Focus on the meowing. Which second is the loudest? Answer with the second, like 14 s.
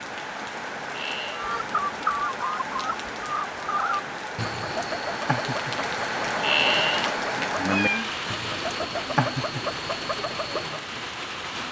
7 s.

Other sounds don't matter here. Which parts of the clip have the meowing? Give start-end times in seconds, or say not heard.
0.9-1.5, 6.3-8.1.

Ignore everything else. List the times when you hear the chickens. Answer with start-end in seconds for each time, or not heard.
1.3-10.8.